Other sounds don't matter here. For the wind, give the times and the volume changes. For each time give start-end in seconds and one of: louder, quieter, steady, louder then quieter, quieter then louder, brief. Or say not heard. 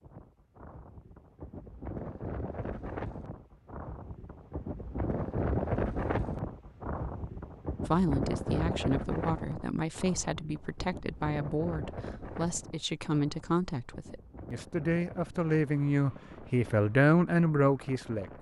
0.0-18.3 louder then quieter.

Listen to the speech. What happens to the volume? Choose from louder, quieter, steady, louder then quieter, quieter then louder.
louder.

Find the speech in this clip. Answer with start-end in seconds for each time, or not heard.
7.8-18.3.